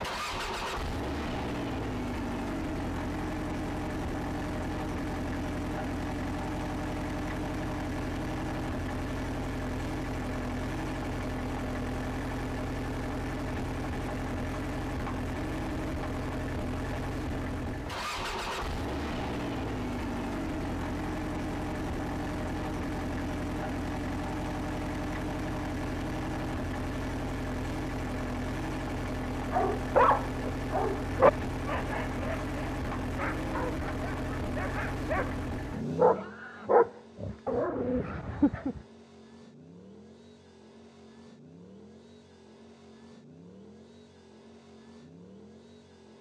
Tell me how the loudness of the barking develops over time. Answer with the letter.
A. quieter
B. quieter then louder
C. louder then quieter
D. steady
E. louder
B.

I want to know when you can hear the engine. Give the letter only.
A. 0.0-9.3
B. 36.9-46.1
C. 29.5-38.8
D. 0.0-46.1
D.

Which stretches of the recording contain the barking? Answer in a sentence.
The barking can be heard from 29.5 to 38.8 s.